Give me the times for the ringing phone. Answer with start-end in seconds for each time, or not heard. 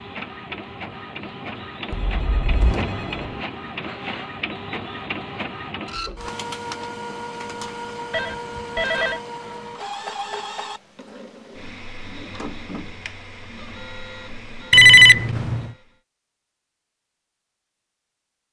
1.9-3.5, 8.1-9.2, 14.7-15.7.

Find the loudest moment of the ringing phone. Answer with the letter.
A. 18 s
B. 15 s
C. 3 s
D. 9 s
B.